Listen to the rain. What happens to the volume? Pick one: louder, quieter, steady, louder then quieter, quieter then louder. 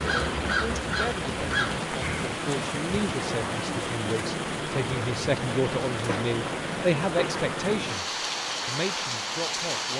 steady.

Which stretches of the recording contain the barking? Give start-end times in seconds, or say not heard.
not heard.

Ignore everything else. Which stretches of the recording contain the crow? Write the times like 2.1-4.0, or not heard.
0.0-2.2.